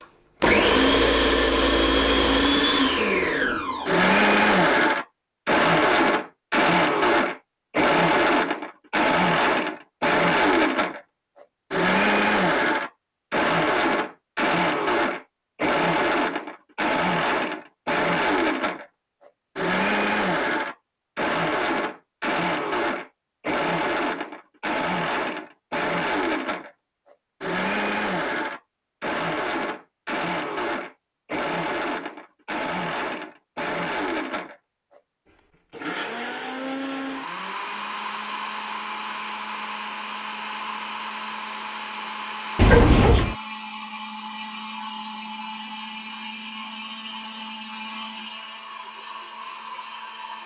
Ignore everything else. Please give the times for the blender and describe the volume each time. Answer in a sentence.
The blender can be heard from 0.4 to 50.4 s, getting quieter.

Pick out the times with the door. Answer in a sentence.
You can hear the door from 42.5 to 43.4 s.